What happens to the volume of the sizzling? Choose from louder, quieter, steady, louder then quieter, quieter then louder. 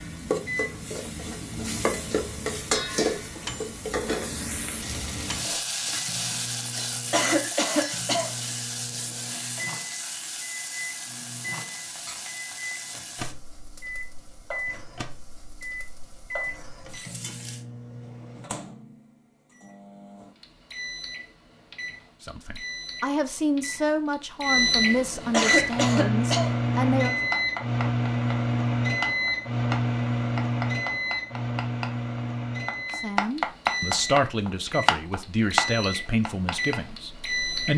quieter.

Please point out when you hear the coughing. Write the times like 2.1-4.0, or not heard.
7.1-8.3, 25.3-26.5.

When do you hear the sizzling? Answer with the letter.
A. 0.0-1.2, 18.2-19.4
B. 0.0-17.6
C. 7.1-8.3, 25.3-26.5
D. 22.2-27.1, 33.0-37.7
B.